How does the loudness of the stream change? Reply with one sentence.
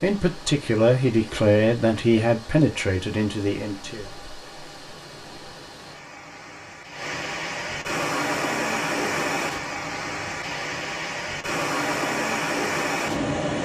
The loudness of the stream goes up.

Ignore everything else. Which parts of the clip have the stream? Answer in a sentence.
The stream can be heard from 0.0 to 13.6 s.